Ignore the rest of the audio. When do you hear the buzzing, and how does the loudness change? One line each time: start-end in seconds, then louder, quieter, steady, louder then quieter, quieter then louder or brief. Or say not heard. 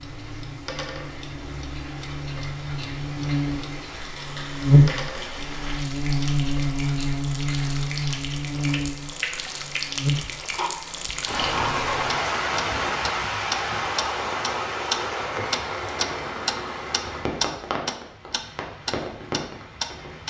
0.0-12.2 louder then quieter.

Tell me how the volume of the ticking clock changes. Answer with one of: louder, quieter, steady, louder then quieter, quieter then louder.
louder.